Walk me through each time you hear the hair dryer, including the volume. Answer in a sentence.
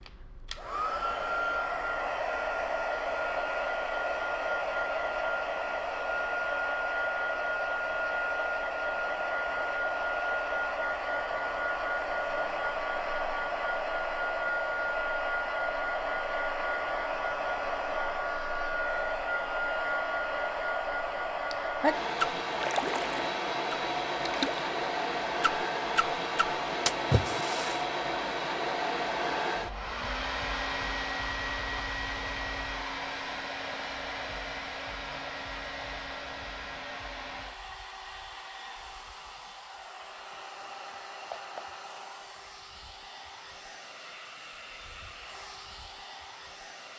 The hair dryer can be heard from 0.0 to 46.9 s, getting quieter.